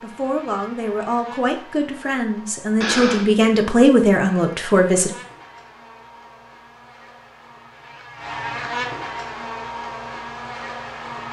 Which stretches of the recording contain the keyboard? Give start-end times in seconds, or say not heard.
not heard.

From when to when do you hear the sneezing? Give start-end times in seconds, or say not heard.
2.8-3.5.